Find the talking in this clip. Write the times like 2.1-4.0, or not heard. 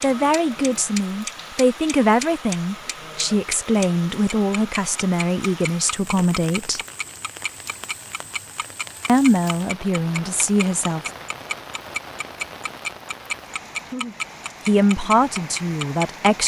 0.0-6.8, 9.1-11.1, 14.7-16.4.